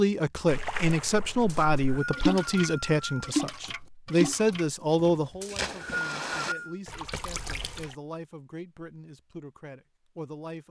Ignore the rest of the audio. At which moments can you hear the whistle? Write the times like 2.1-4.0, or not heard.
1.4-3.4, 5.4-6.8.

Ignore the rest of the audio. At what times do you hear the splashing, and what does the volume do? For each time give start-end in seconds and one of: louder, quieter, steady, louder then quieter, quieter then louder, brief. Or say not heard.
0.5-8.0 louder then quieter.